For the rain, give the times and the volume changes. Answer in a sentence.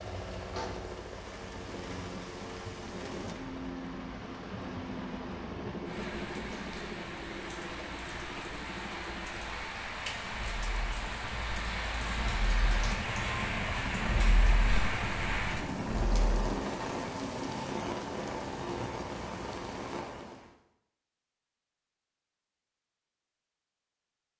You can hear the rain from 0.0 to 20.5 s, getting louder.